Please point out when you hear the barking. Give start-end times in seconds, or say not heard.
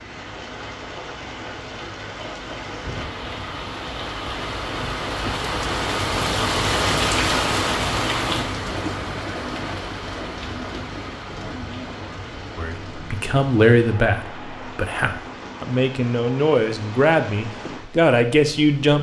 not heard.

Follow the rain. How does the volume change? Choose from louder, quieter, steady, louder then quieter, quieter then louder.
louder then quieter.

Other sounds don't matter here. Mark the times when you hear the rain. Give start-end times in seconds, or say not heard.
0.0-18.9.